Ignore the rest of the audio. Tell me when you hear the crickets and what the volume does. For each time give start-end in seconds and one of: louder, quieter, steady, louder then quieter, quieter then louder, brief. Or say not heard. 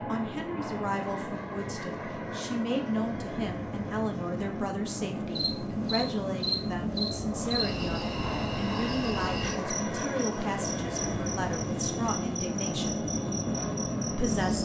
5.3-14.6 quieter.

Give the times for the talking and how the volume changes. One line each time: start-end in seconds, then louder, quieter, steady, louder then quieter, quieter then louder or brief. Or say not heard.
0.1-13.1 steady
14.1-14.6 brief.